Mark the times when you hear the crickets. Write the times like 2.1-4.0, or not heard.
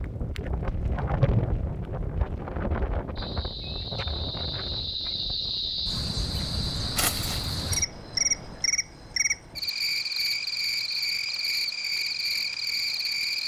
3.1-13.4.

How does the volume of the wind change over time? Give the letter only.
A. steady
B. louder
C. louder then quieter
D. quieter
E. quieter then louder
D.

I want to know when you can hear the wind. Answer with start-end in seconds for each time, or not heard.
0.0-8.8.